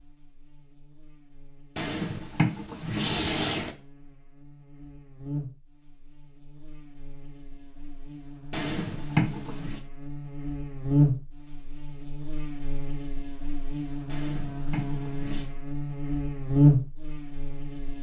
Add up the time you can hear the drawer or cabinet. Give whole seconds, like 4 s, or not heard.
5 s.